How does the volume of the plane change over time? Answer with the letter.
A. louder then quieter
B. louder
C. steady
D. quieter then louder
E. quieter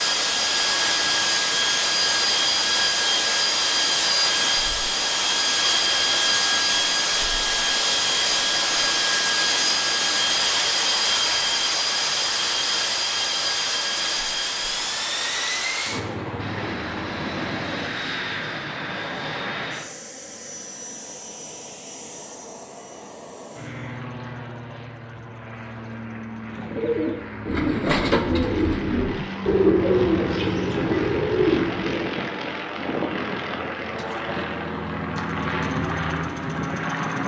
D.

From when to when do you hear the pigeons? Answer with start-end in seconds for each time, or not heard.
26.4-32.2.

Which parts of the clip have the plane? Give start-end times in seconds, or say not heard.
0.0-37.2.